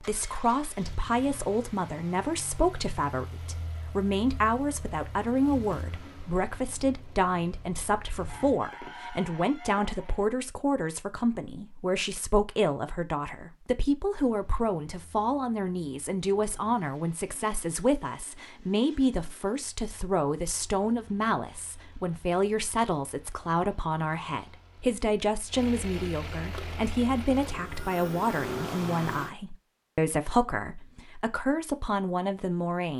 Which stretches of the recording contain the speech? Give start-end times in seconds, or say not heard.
0.0-32.9.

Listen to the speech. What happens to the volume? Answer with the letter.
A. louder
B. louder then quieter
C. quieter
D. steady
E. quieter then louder
D.